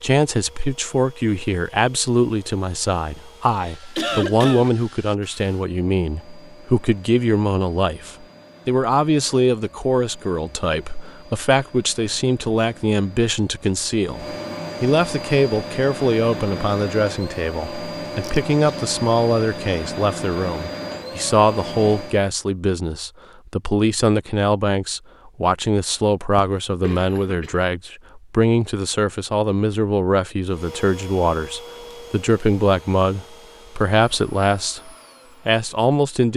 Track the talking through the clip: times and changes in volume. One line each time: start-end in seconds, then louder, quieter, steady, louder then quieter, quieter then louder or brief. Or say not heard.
0.0-36.3 steady.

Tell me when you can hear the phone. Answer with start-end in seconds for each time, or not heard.
not heard.